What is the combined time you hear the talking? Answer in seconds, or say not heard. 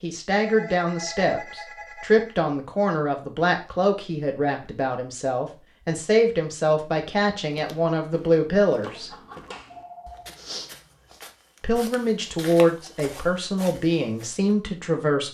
13 s.